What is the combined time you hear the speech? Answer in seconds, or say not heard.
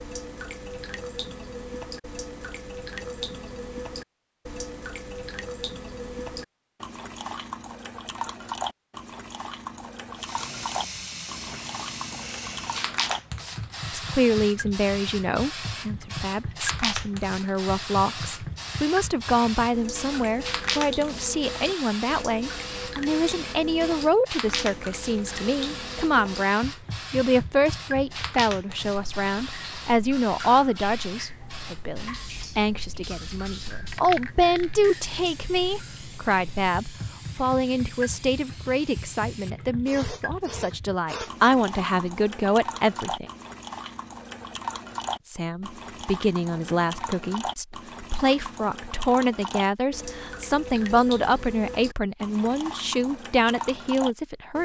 39 s.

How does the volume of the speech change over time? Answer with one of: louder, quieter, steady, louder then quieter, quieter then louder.
steady.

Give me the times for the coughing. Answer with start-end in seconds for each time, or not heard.
not heard.